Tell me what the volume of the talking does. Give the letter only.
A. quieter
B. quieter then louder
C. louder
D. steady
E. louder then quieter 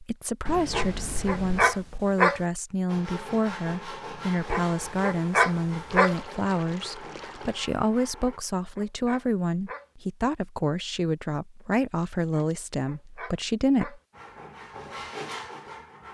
D.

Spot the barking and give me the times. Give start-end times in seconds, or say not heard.
0.7-2.4, 4.5-6.2, 8.2-9.8, 12.3-14.0.